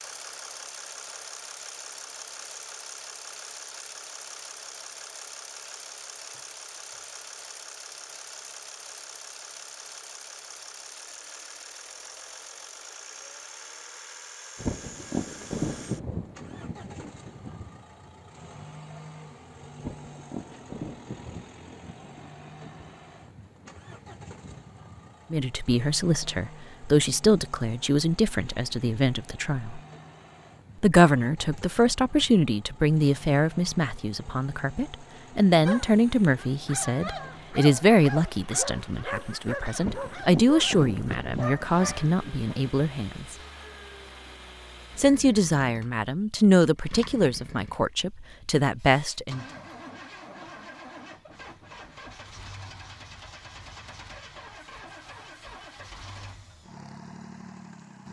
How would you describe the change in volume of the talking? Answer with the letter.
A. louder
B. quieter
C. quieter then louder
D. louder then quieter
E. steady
E.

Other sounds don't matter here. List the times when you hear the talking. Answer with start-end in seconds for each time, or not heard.
25.3-29.8, 30.8-43.4, 45.0-49.5.